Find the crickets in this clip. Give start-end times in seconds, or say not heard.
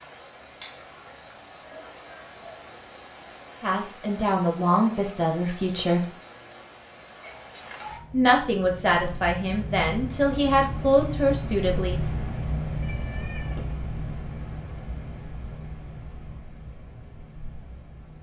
0.0-18.1.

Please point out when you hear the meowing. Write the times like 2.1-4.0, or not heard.
12.8-13.7.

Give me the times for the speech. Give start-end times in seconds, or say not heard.
3.6-6.0, 8.1-12.1.